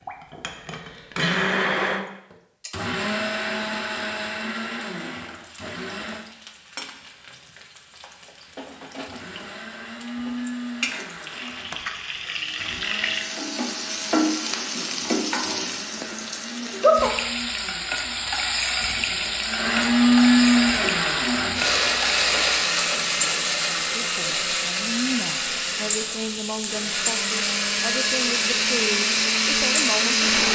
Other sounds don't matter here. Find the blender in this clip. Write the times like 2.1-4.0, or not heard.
0.0-6.2, 8.7-30.5.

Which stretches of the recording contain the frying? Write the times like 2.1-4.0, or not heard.
5.2-30.5.